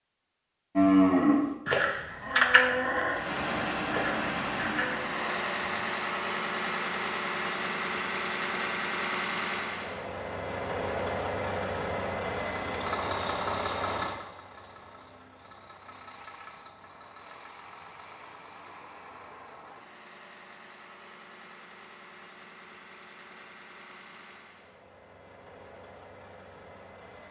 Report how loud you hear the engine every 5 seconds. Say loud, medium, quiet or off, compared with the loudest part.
loud, loud, loud, quiet, quiet, quiet.